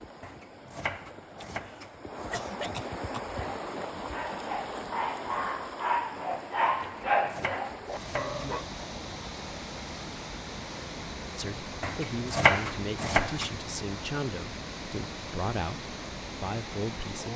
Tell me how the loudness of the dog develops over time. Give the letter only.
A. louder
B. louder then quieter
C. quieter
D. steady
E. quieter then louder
B.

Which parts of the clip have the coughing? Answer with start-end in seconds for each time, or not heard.
1.4-3.2.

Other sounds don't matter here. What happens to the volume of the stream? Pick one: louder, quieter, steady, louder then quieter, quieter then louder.
steady.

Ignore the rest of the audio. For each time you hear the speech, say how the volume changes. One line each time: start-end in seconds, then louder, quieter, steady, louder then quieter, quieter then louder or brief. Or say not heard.
11.3-17.3 steady.